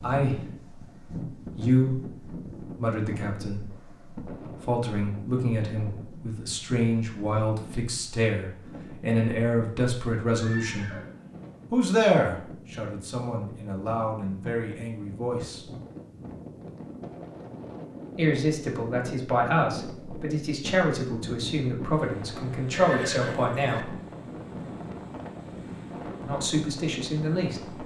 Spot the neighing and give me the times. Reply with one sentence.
You can hear the neighing from 10.3 to 11.7 s and from 22.7 to 23.9 s.